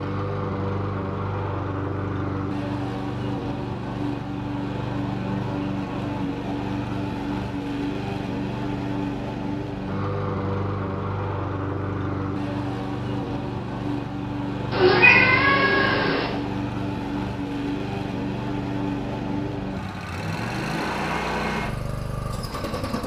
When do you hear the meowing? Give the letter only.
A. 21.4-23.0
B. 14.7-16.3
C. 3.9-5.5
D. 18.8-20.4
B.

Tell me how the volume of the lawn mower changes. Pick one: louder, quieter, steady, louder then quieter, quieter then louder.
steady.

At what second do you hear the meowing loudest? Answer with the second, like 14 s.
15 s.